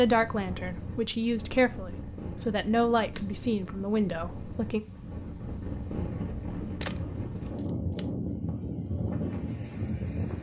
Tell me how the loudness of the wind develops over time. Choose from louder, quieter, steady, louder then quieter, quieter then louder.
louder.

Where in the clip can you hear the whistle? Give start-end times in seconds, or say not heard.
not heard.